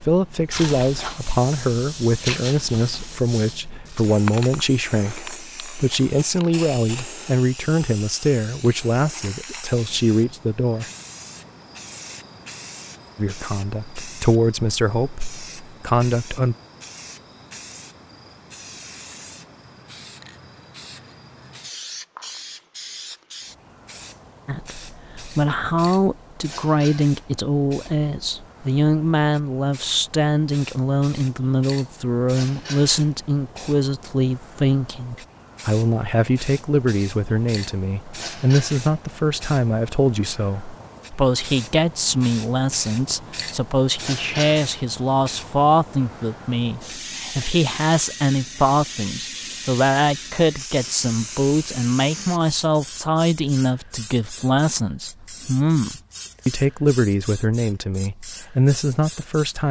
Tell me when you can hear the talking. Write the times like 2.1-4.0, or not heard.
0.0-10.9, 13.2-16.6, 24.4-59.6.